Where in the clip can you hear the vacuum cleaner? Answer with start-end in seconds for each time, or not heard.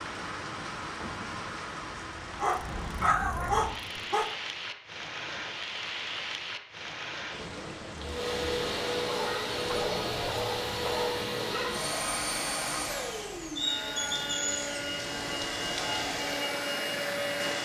8.0-17.6.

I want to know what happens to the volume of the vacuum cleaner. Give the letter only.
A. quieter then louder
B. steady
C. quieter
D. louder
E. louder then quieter
B.